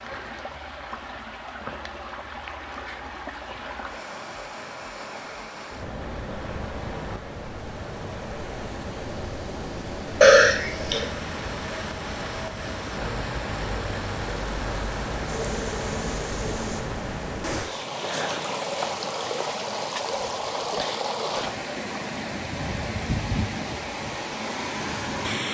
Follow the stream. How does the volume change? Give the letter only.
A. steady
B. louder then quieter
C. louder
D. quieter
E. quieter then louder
C.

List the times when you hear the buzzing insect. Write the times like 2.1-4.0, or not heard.
15.2-16.9.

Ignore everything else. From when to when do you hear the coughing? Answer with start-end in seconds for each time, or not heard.
10.2-11.1.